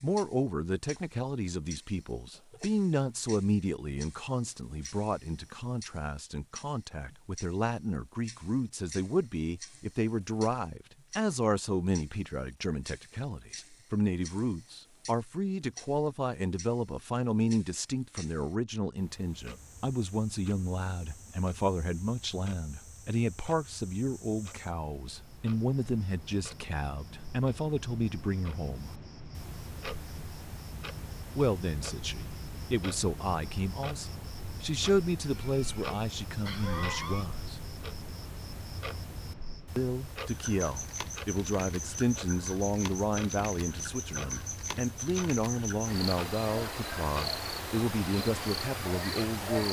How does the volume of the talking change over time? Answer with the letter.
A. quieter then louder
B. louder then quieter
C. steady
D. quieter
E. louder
C.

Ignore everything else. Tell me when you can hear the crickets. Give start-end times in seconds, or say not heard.
19.4-49.6.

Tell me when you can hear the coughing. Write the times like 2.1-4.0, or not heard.
2.3-2.7, 35.2-37.2.